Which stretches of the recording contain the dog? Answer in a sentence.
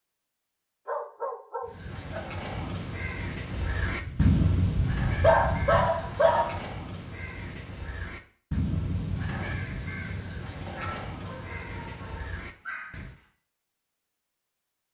You can hear the dog from 0.8 to 2.2 s, from 5.2 to 6.6 s and from 10.8 to 13.2 s.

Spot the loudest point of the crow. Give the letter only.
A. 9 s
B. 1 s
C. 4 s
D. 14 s
C.